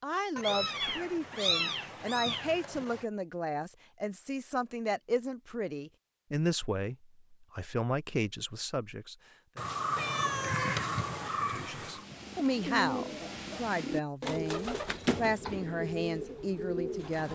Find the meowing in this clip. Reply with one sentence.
You can hear the meowing from 0.3 to 3.0 s and from 9.6 to 12.1 s.